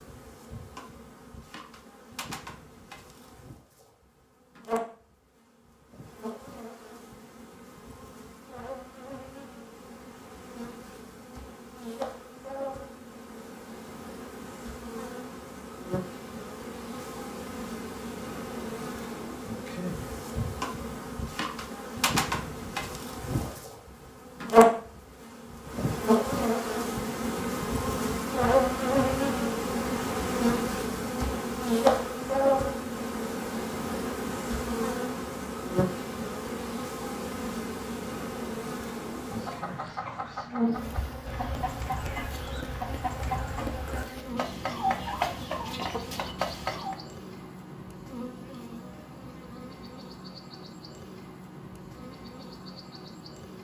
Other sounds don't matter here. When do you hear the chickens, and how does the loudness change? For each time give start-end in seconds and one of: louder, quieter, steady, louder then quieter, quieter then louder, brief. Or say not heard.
39.2-47.0 louder.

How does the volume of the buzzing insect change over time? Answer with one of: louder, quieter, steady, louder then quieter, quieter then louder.
louder then quieter.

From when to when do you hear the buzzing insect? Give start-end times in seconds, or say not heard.
0.0-53.5.